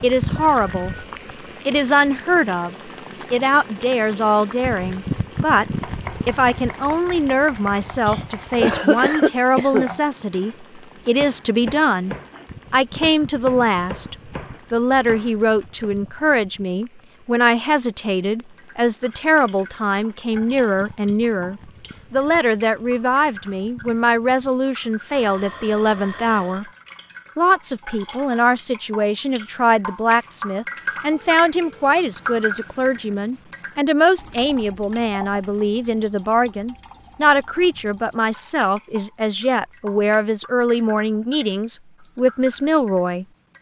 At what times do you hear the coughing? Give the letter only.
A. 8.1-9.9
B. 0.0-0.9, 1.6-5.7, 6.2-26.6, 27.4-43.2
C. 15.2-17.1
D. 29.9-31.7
A.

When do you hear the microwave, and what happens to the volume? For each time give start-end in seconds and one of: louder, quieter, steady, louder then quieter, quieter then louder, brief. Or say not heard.
not heard.